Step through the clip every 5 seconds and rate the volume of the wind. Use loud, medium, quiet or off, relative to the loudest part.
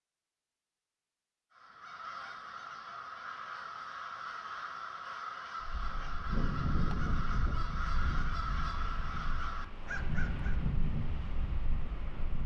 off, loud, loud.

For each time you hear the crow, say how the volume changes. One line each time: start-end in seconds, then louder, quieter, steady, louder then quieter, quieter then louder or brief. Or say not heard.
1.5-10.6 steady.